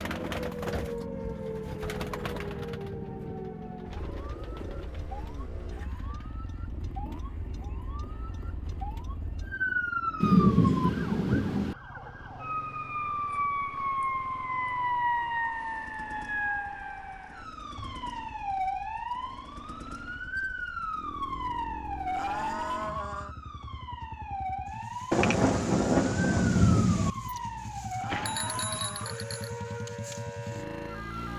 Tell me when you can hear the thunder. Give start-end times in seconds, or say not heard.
10.2-11.8, 25.1-27.1.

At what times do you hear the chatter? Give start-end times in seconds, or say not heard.
not heard.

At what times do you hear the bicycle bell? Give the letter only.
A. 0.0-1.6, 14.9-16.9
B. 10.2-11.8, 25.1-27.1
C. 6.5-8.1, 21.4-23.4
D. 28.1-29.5
D.